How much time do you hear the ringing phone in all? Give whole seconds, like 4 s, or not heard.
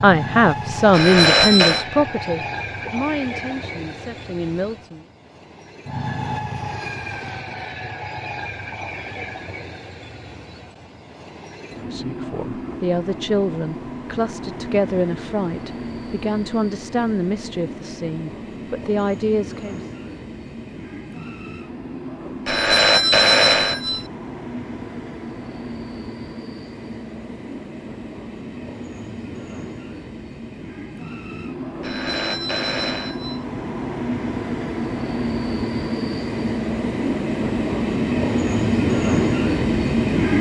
4 s.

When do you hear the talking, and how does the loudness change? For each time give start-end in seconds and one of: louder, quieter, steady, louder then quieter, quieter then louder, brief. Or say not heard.
0.0-5.0 quieter
11.8-19.8 steady.